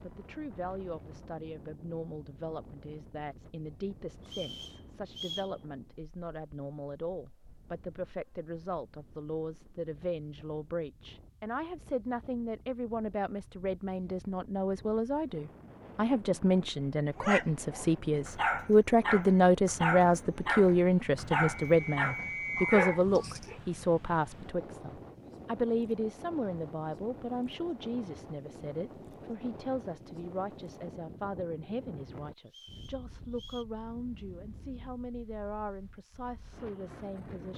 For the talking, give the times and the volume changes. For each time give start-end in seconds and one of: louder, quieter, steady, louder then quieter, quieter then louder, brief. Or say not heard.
0.0-37.5 louder then quieter.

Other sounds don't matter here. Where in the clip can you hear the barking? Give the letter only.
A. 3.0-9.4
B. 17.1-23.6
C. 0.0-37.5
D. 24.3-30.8
B.